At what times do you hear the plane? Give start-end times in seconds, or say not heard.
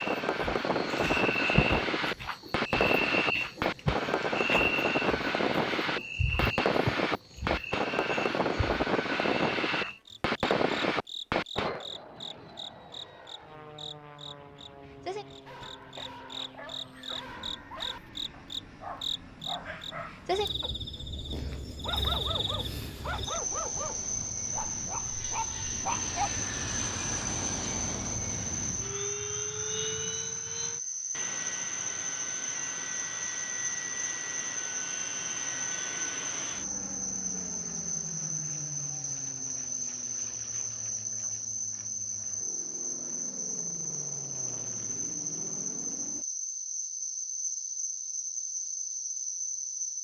0.0-20.6, 22.2-46.2.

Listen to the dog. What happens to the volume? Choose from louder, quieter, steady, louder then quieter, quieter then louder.
louder.